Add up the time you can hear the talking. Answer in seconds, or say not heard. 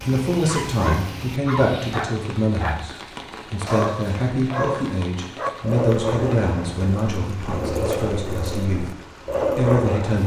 10 s.